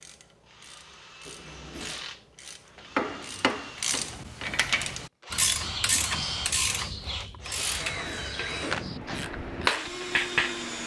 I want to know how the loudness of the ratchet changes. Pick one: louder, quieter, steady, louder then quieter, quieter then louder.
louder then quieter.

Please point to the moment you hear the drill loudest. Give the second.
8 s.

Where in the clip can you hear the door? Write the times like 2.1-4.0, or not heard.
1.2-2.1, 7.5-8.9.